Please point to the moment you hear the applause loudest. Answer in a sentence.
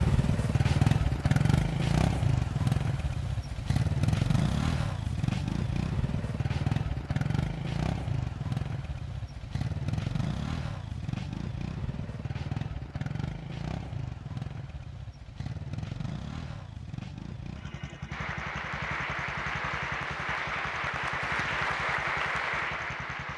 The loudest moment of the applause is at 22 seconds.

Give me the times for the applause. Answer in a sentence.
The applause can be heard from 18.1 to 23.3 s.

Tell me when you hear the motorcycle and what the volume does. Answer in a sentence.
The motorcycle can be heard from 0.0 to 23.3 s, getting quieter.